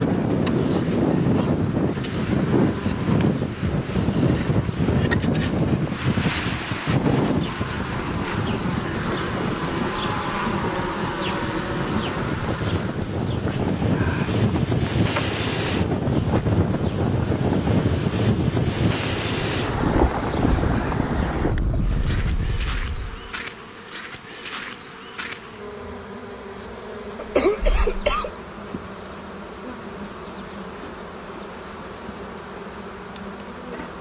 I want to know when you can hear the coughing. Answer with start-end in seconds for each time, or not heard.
27.1-28.3.